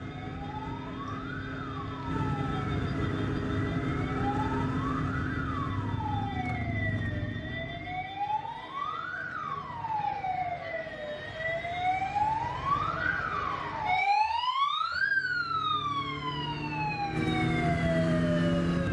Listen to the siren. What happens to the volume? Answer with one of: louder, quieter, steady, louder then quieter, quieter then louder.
louder.